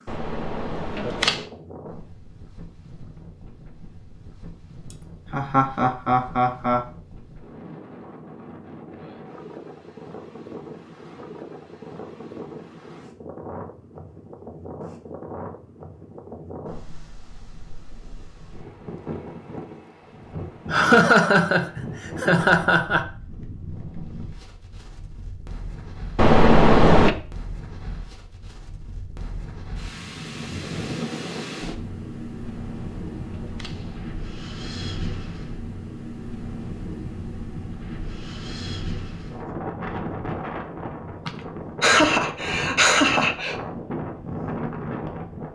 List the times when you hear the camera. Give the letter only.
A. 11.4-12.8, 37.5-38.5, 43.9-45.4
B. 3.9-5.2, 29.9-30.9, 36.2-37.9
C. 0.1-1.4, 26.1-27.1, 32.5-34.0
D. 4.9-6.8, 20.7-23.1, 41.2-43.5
C.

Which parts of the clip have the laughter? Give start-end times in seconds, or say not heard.
4.9-6.8, 20.7-23.1, 41.2-43.5.